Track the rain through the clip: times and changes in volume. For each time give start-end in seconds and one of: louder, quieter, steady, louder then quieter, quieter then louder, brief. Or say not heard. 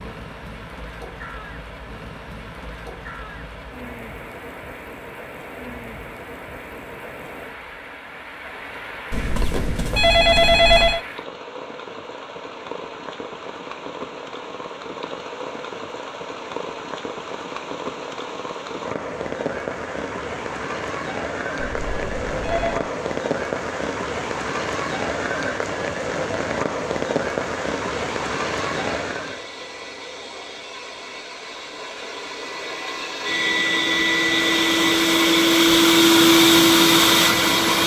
0.0-29.5 louder.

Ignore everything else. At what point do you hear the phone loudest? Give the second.
11 s.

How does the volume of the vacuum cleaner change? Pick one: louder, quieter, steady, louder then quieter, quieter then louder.
louder.